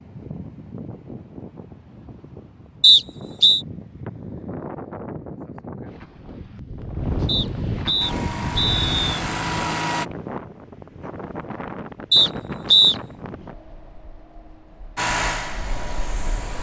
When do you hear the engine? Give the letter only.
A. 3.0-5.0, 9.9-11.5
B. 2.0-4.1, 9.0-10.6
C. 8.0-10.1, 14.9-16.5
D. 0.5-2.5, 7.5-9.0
C.